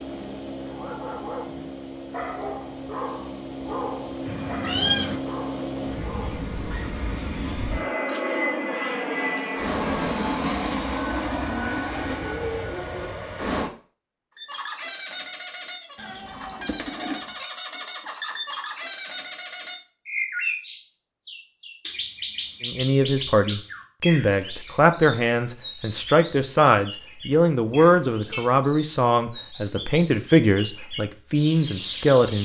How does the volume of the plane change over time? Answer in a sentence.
The loudness of the plane goes up.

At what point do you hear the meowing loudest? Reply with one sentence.
The volume of the meowing peaks at 5 seconds.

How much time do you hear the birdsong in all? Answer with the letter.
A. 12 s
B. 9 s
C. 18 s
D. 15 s
C.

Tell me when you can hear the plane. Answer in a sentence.
You can hear the plane from 0.0 to 13.7 s.